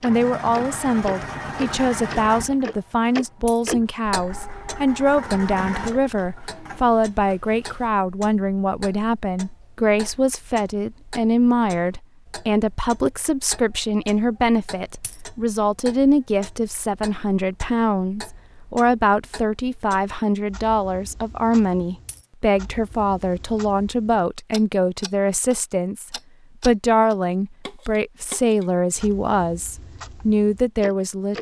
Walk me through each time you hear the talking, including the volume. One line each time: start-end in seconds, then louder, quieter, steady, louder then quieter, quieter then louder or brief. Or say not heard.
0.0-31.3 steady.